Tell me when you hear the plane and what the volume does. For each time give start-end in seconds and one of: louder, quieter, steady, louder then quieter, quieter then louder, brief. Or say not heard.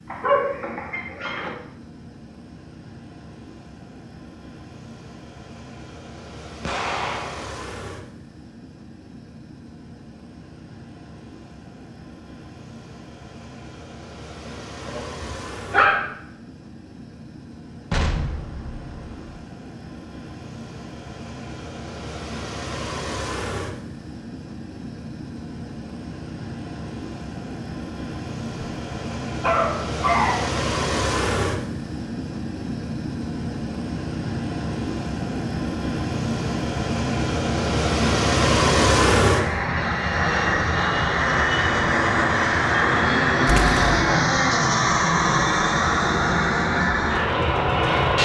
0.0-48.1 louder.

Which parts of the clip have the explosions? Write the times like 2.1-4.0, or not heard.
6.7-7.6, 17.9-19.4, 43.5-44.0.